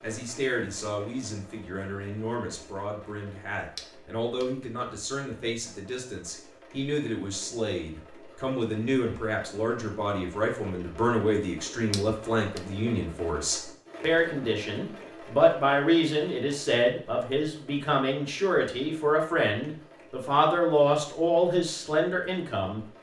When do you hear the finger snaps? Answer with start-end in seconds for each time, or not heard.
3.8-4.5, 11.9-12.6.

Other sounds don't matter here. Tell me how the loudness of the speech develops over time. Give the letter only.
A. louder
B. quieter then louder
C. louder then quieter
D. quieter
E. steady
A.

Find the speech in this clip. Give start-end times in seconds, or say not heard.
0.0-22.8.